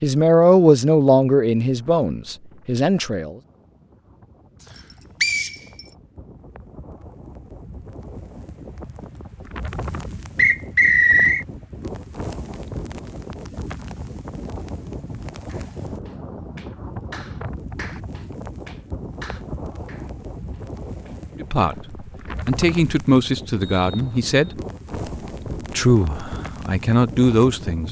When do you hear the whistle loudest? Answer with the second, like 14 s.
11 s.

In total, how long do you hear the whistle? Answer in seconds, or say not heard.
3 s.